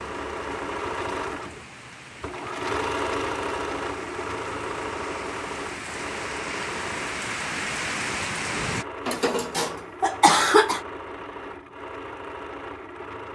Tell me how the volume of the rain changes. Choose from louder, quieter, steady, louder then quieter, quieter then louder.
louder.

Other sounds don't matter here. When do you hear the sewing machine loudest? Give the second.
3 s.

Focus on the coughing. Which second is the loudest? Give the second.
10 s.